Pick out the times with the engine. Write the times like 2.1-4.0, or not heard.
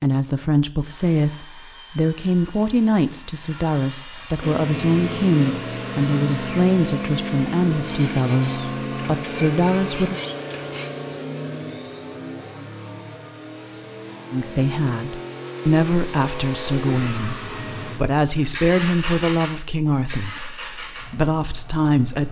4.4-22.2.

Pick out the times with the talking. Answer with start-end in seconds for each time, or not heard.
0.0-10.2, 14.3-22.2.